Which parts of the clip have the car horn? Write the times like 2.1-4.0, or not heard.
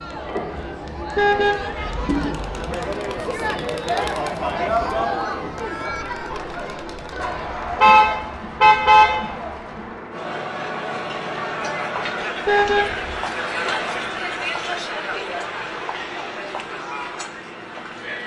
1.1-2.6, 7.8-9.2, 12.4-13.1.